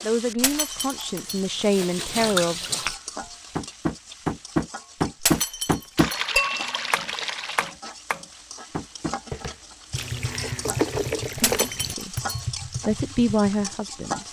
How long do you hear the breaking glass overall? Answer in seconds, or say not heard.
3 s.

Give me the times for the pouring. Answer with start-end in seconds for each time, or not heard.
1.2-3.0, 6.0-7.8, 9.9-11.9.